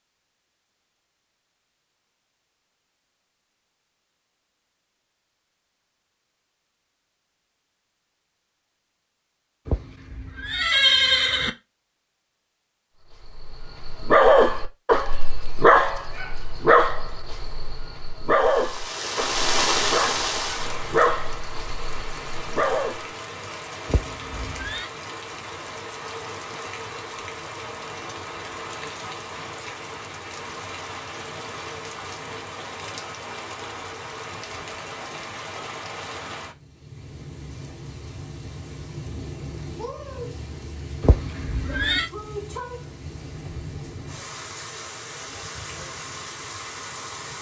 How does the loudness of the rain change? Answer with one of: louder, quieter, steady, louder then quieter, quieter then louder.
quieter.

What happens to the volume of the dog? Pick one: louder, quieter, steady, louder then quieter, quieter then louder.
quieter.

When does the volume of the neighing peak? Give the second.
11 s.